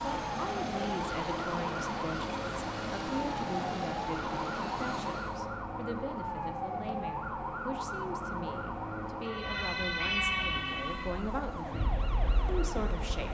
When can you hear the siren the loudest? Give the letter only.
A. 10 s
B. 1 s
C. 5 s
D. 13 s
A.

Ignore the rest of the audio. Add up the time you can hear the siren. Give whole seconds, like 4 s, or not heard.
13 s.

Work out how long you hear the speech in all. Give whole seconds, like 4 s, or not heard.
13 s.